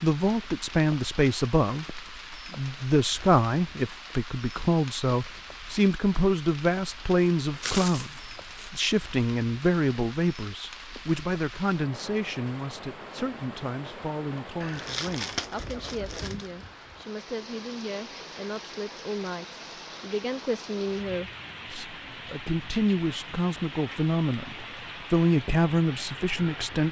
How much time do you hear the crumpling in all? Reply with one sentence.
The crumpling can be heard for 3 seconds in total.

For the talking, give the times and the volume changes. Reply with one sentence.
The talking can be heard from 0.0 to 26.8 s, getting quieter then louder.